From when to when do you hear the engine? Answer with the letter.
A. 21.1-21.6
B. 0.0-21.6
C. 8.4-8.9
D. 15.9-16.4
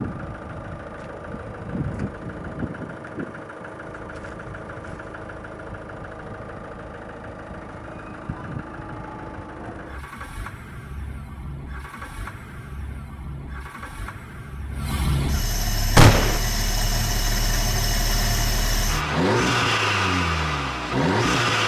B.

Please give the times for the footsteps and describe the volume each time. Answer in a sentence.
The footsteps can't be heard in this clip.